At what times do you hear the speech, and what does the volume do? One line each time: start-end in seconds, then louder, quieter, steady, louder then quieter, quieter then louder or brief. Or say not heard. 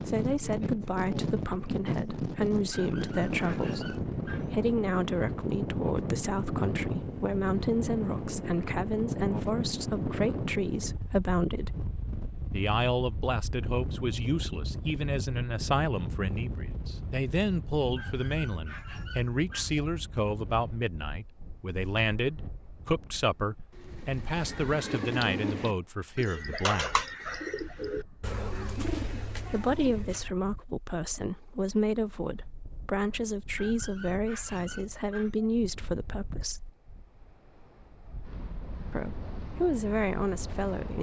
0.0-11.8 steady
12.5-26.9 steady
29.4-36.7 steady
38.9-40.9 brief.